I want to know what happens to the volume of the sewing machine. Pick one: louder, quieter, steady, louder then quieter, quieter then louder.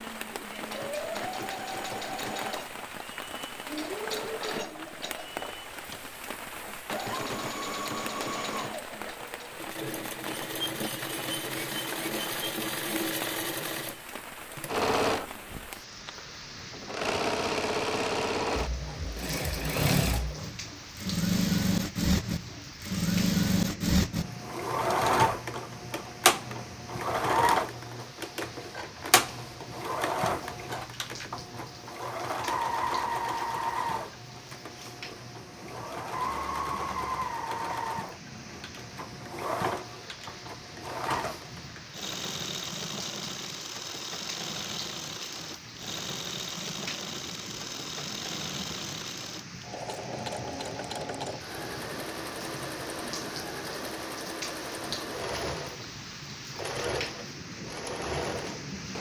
louder then quieter.